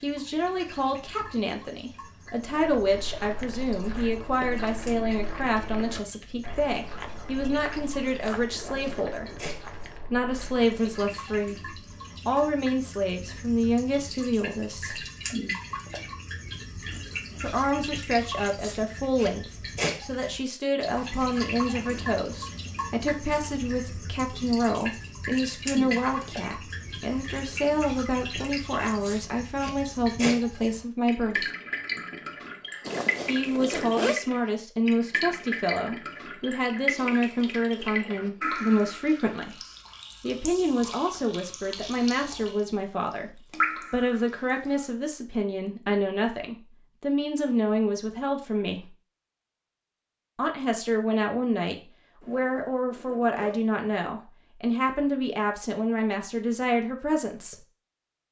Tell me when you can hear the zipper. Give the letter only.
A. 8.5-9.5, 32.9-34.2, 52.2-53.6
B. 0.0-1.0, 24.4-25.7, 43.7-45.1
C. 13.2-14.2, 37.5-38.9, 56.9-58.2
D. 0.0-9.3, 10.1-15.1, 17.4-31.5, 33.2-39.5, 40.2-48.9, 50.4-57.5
A.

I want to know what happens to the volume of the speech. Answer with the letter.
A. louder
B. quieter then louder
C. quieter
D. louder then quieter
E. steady
E.